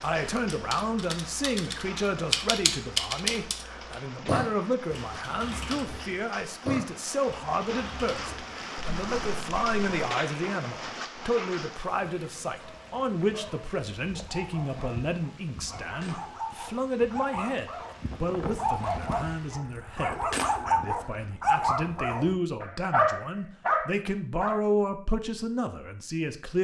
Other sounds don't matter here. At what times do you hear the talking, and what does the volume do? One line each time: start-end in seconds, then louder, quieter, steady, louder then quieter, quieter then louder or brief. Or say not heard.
0.0-26.5 steady.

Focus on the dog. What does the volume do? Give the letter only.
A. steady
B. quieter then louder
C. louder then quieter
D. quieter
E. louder
E.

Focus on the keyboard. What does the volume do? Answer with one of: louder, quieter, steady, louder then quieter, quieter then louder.
louder then quieter.